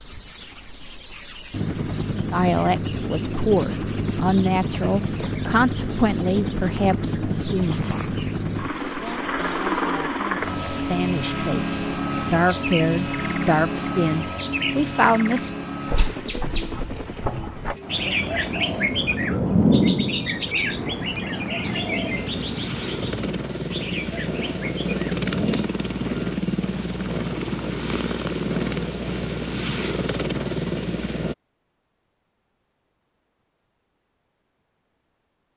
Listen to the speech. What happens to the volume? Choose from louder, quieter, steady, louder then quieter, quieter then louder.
quieter then louder.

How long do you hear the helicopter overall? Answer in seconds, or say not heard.
30 s.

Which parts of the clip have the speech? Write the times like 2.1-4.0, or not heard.
2.3-7.8, 9.0-15.5.